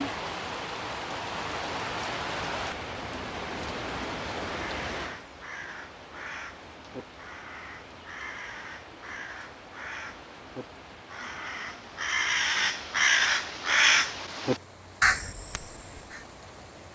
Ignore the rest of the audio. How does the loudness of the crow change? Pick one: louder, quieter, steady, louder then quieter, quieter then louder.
louder.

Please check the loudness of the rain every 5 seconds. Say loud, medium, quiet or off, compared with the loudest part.
loud, quiet, quiet, quiet.